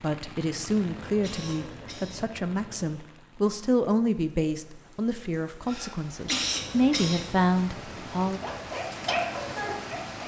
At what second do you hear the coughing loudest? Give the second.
6 s.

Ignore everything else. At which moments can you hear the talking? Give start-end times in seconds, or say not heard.
0.0-8.4.